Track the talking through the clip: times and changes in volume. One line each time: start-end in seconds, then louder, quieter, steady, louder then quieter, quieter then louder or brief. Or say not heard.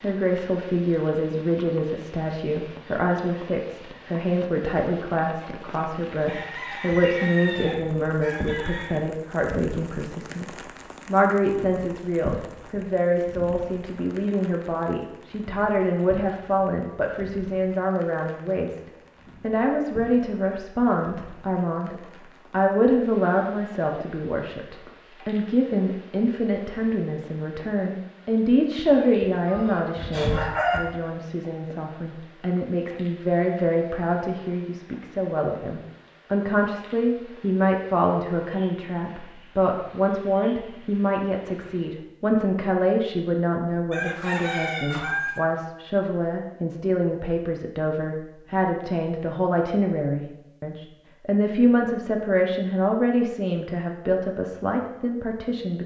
0.0-18.8 steady
19.4-55.8 steady.